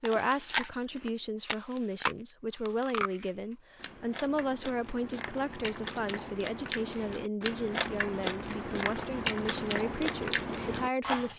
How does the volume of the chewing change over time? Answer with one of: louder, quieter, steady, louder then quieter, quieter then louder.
quieter then louder.